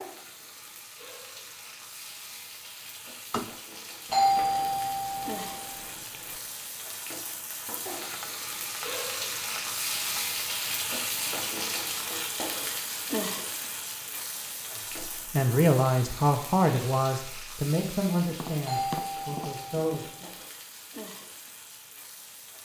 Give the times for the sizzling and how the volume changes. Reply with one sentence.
The sizzling can be heard from 0.0 to 22.6 s, getting louder then quieter.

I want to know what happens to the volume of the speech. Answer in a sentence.
The volume of the speech goes down.